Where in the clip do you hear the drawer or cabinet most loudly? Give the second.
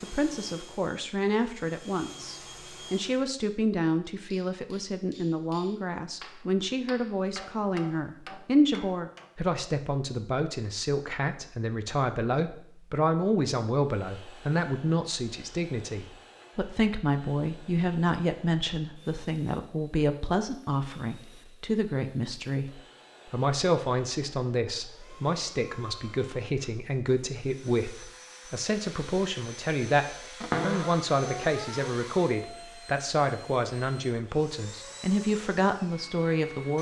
31 s.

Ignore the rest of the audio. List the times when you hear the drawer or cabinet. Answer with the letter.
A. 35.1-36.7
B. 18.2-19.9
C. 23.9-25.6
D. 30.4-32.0
D.